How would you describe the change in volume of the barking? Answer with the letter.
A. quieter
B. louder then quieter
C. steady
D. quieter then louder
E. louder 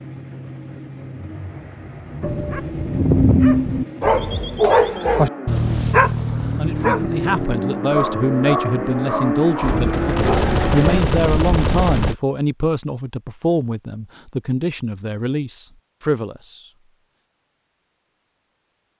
A.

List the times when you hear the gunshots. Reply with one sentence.
You can hear the gunshots from 9.6 to 12.2 s.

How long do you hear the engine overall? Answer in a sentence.
You can hear the engine for 11 seconds altogether.